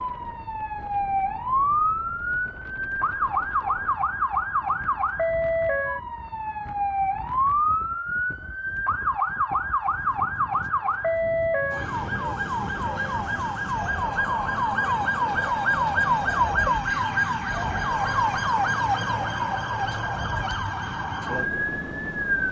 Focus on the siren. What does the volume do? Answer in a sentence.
The loudness of the siren stays about the same.